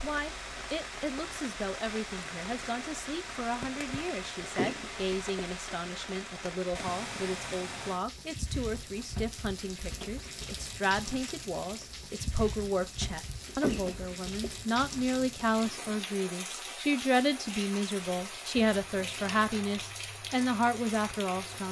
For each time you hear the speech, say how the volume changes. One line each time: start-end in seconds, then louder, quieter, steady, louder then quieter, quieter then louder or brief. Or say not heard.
0.0-21.6 louder.